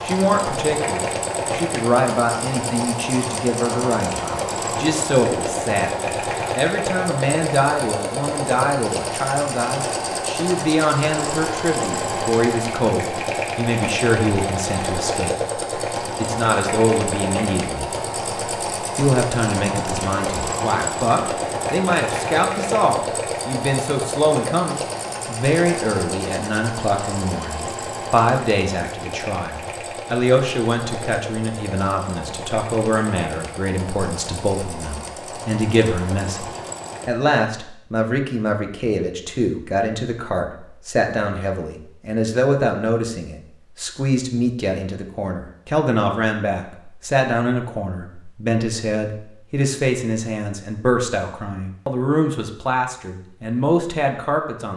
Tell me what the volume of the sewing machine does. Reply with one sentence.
The loudness of the sewing machine goes down.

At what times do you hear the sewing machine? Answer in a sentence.
You can hear the sewing machine from 0.0 to 37.1 s.